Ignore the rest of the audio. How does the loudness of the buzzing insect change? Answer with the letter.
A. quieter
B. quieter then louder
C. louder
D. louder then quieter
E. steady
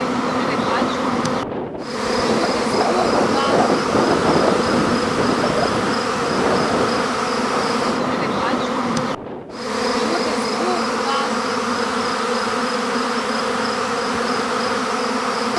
E.